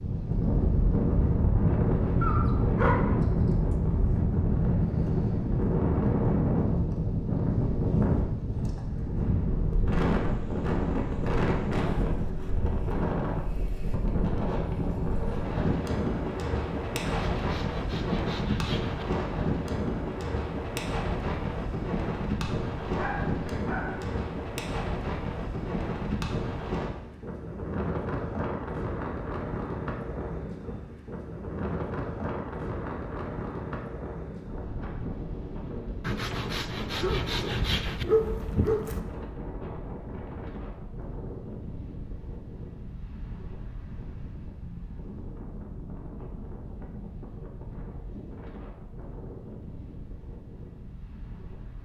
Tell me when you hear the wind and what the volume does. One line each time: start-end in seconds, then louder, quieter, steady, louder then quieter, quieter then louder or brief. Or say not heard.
0.0-51.8 quieter.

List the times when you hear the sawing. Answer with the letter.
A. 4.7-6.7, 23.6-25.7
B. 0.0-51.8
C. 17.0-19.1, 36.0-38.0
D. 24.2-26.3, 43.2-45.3
C.